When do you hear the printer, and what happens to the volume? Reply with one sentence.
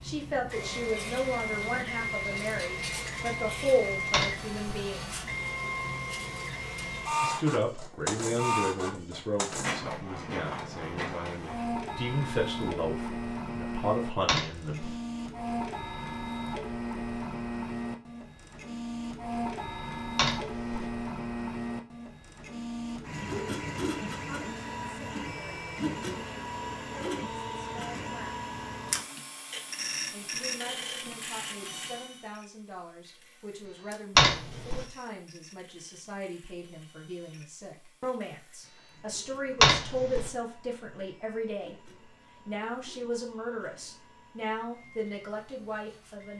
The printer can be heard from 0.0 to 46.3 s, getting quieter.